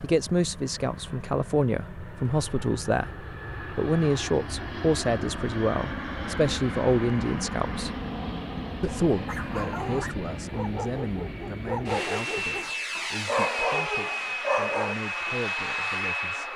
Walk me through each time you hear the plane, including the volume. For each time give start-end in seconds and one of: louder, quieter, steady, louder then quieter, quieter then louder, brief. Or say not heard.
0.0-16.5 louder.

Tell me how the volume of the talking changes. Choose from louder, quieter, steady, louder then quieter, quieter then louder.
quieter.